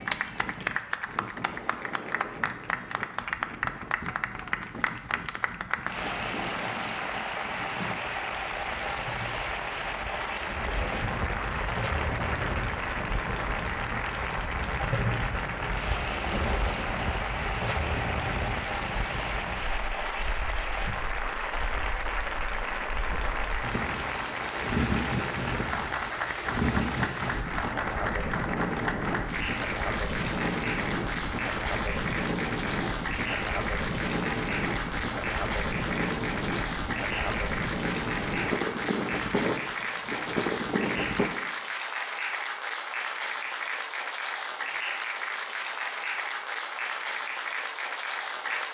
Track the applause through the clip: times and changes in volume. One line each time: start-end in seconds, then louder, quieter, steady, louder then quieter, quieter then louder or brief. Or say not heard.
0.0-48.6 steady.